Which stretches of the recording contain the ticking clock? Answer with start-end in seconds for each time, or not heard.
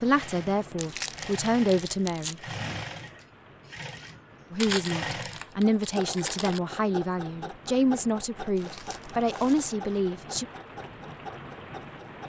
not heard.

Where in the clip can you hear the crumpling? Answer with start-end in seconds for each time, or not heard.
0.8-2.4, 4.6-6.6, 8.6-9.7.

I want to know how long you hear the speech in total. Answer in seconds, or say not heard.
8 s.